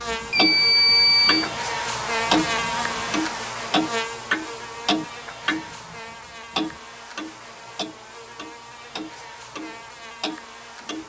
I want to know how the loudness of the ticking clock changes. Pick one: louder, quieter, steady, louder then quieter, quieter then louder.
quieter.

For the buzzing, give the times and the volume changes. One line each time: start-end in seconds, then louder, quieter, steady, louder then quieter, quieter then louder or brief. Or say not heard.
0.0-11.0 quieter.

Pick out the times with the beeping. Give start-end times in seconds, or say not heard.
0.3-1.5.